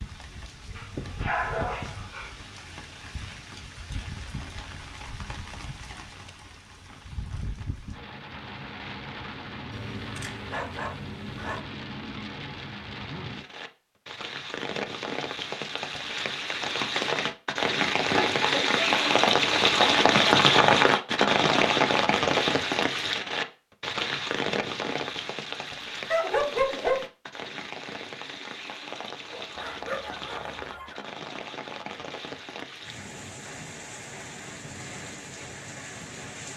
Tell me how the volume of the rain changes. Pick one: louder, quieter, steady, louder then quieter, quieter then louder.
louder then quieter.